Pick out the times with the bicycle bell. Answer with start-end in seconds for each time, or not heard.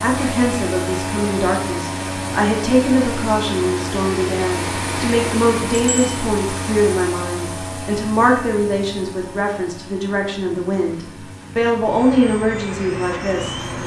5.7-6.2.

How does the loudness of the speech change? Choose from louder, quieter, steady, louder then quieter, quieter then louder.
steady.